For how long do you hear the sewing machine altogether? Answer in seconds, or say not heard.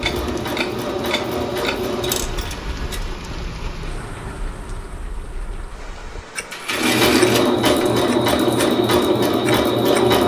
6 s.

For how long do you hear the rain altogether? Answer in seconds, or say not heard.
7 s.